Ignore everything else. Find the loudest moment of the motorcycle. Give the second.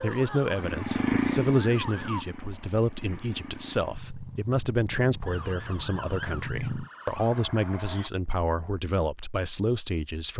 1 s.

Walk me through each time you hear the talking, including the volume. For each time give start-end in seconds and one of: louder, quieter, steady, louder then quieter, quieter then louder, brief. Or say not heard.
0.0-10.3 steady.